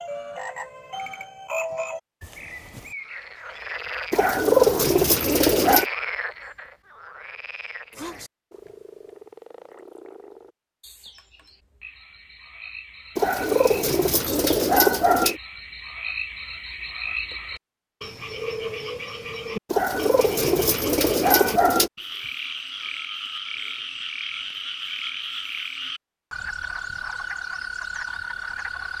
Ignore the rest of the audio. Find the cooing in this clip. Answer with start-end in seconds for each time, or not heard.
4.1-5.8, 13.2-15.4, 19.7-21.9.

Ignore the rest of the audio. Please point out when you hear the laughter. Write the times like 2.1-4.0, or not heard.
not heard.